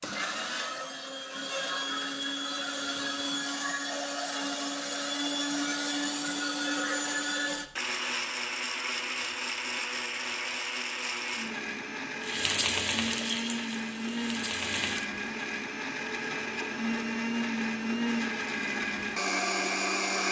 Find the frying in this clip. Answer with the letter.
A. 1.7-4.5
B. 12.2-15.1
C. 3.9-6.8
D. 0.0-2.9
B.